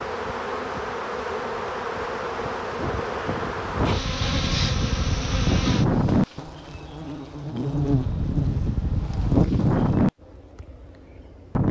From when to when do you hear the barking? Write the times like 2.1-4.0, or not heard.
not heard.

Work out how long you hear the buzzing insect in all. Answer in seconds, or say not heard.
10 s.